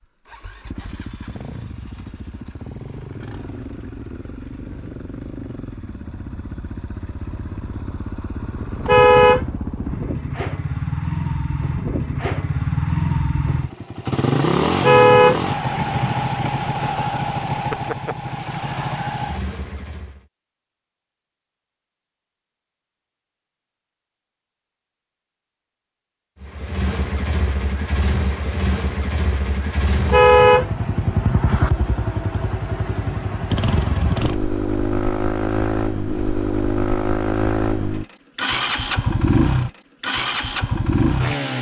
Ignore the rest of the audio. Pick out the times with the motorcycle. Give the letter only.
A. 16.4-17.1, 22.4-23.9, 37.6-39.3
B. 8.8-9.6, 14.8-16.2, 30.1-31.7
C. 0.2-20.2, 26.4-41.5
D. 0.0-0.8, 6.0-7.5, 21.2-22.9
C.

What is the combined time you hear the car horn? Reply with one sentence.
The car horn can be heard for 4 seconds in total.